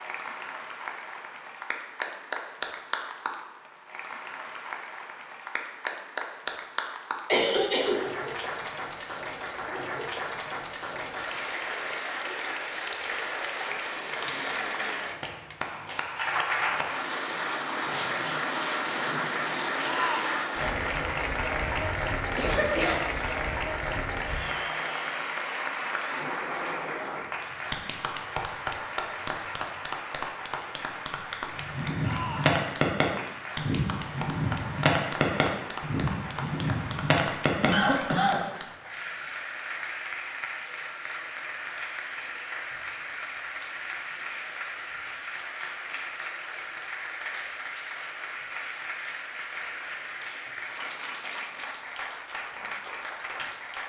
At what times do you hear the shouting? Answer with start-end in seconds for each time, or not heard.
19.8-20.4, 32.0-32.6.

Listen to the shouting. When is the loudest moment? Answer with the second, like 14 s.
20 s.